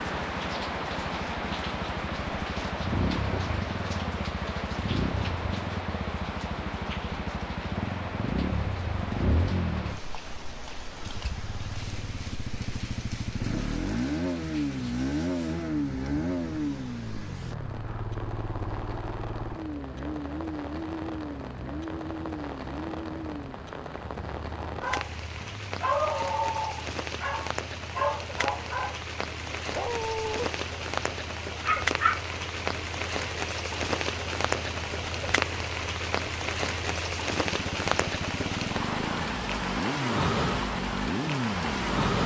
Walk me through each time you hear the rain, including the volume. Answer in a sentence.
You can hear the rain from 0.0 to 42.2 s, getting quieter then louder.